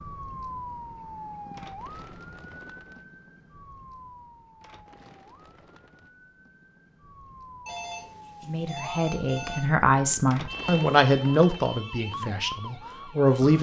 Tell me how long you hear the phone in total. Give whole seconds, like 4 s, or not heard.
2 s.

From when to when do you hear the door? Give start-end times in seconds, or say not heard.
not heard.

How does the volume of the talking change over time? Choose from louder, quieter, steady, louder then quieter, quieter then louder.
louder then quieter.